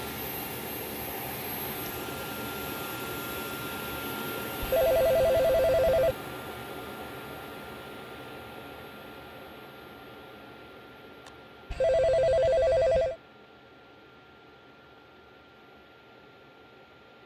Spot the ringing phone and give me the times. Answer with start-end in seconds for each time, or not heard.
4.6-6.2, 11.2-13.2.